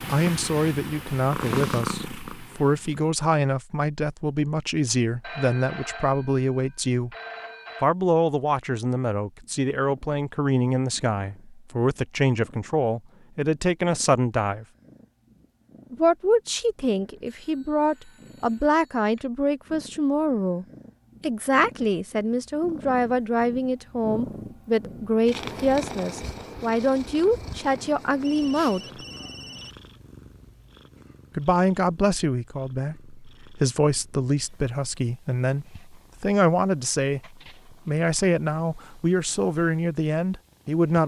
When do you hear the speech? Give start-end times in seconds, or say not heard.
0.0-7.1, 7.8-14.7, 15.9-28.8, 31.4-41.0.